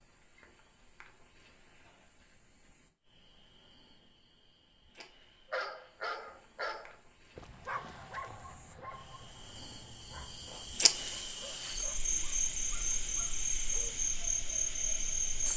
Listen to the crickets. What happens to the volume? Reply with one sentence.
The loudness of the crickets goes up.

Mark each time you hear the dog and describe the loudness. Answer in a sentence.
The dog can be heard from 5.5 to 13.9 s, getting quieter.